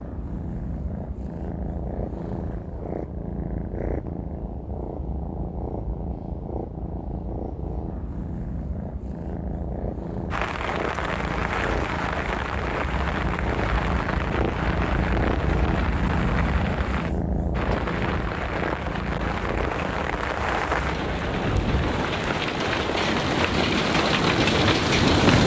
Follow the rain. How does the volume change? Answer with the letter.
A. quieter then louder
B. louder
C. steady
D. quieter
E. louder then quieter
B.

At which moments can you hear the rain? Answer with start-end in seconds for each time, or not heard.
10.3-25.4.